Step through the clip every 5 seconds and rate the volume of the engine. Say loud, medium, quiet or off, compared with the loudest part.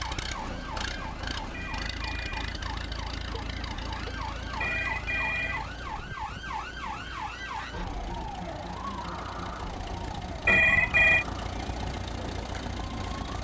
loud, medium, loud.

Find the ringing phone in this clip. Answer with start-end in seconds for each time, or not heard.
1.5-2.4, 4.6-5.7, 10.4-11.2.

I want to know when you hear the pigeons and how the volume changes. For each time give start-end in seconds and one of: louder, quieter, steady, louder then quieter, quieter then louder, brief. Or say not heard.
not heard.